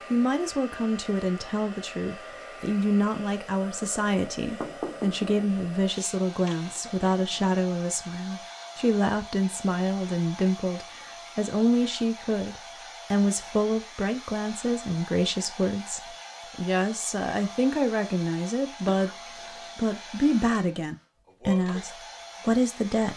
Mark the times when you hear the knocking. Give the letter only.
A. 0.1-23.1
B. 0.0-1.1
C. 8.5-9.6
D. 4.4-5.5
D.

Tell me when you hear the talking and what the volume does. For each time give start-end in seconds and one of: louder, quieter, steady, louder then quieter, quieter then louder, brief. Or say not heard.
0.1-23.1 steady.